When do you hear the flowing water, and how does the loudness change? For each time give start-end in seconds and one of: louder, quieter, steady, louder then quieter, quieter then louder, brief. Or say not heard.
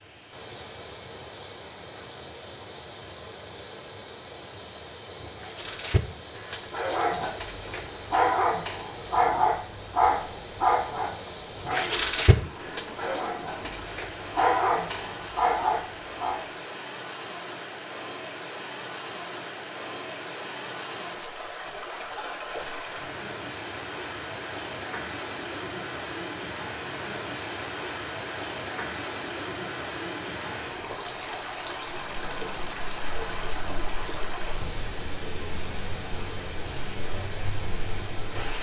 0.0-38.5 louder.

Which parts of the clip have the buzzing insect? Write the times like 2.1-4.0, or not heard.
32.0-38.5.